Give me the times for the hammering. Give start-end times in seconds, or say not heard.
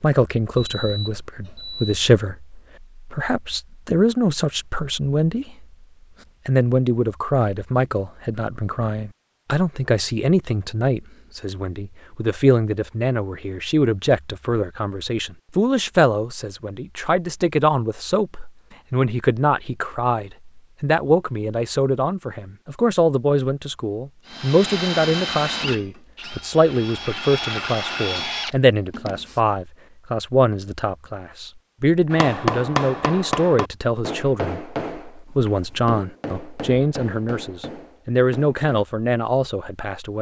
32.1-38.6.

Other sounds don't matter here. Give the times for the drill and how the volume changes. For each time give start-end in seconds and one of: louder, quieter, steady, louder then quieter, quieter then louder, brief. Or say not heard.
24.2-29.4 quieter then louder.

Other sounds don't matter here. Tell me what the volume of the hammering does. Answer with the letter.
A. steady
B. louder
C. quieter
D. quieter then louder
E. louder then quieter
C.